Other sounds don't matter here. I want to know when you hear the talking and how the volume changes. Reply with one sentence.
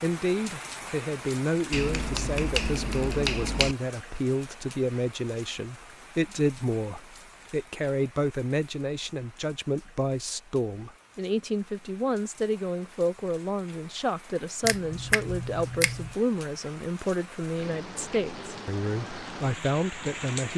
The talking can be heard from 0.0 to 20.5 s, at a steady volume.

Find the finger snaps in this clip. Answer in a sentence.
The finger snaps can be heard from 1.7 to 3.8 s and from 14.6 to 16.1 s.